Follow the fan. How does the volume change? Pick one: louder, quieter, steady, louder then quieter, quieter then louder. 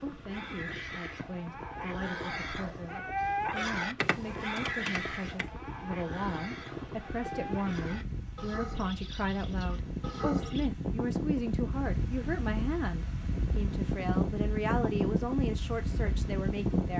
louder.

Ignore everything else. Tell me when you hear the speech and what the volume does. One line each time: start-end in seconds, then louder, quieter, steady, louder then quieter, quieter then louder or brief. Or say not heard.
0.0-16.9 louder.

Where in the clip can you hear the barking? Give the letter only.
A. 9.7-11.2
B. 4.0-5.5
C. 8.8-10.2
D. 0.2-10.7
D.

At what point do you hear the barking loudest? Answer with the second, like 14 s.
3 s.